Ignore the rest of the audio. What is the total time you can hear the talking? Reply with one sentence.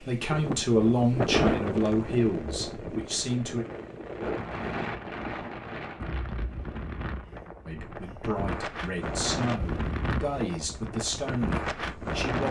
The talking can be heard for 8 seconds in total.